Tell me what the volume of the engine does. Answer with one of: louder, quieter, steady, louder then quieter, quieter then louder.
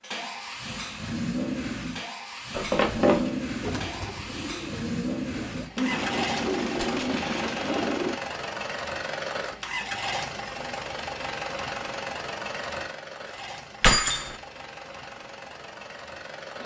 quieter.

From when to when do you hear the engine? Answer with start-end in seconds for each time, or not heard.
0.0-16.6.